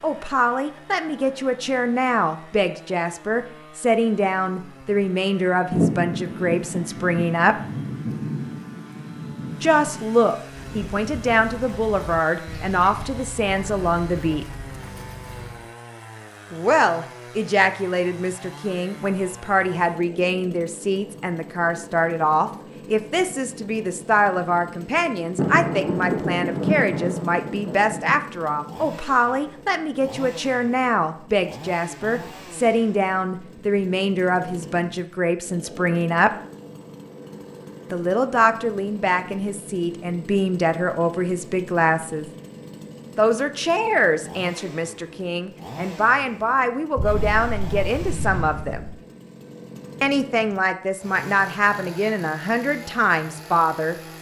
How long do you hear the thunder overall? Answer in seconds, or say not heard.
9 s.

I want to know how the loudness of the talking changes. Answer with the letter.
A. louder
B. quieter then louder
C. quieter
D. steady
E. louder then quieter
D.